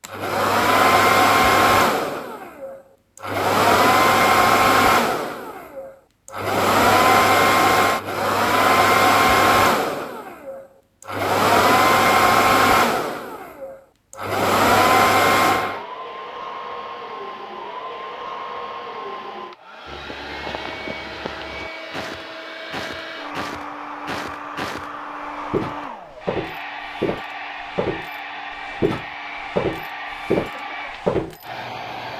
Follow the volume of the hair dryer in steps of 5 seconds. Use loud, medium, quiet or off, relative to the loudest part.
loud, loud, loud, medium, quiet, quiet, quiet.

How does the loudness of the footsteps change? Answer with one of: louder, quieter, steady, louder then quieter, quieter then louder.
louder.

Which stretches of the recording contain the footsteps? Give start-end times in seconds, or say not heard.
19.9-31.4.